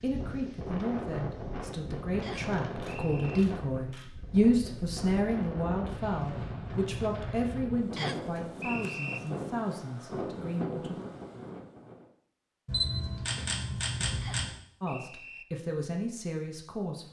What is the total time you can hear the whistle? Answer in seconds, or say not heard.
4 s.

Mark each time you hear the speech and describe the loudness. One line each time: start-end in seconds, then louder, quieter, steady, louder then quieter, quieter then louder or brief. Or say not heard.
0.0-10.9 louder then quieter
14.8-17.0 brief.